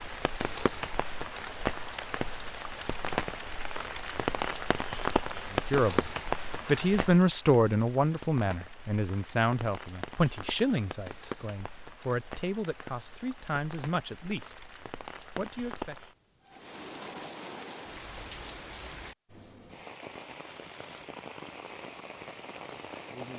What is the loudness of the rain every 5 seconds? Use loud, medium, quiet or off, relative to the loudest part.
loud, loud, medium, medium, medium.